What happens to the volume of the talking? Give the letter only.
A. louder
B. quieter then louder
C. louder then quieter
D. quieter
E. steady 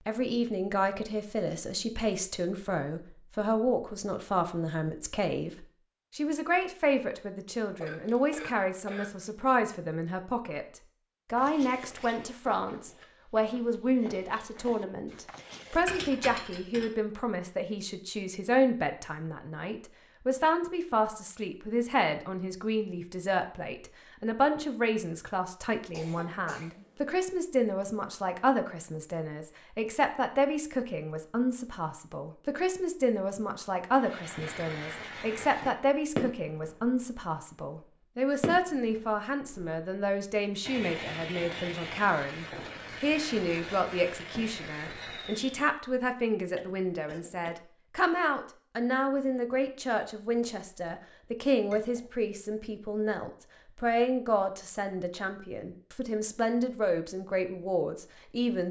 E.